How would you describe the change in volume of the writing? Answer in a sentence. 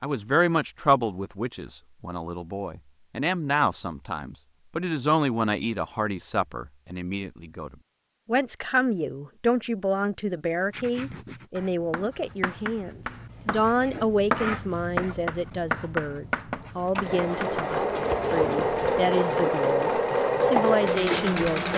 The volume of the writing goes up, then down.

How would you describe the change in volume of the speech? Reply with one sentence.
The loudness of the speech stays about the same.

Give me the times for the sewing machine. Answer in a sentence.
The sewing machine can be heard from 16.9 to 21.7 s.